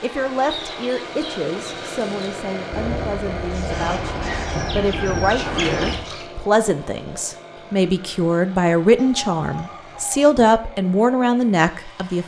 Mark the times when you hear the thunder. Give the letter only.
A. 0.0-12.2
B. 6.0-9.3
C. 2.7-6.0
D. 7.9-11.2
C.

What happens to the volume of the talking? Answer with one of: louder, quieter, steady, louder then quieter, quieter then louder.
louder.